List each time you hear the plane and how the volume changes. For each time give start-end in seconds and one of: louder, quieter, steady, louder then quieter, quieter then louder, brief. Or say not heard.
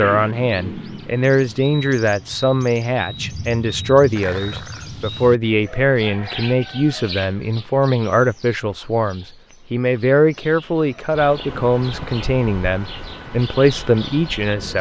not heard.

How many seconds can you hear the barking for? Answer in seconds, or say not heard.
not heard.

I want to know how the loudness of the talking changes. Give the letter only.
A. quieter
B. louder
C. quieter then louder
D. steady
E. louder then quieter
D.